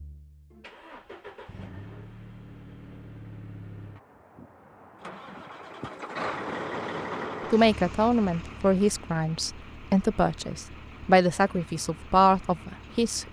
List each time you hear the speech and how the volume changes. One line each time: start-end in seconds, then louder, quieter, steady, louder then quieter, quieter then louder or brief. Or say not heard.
7.5-13.2 quieter then louder.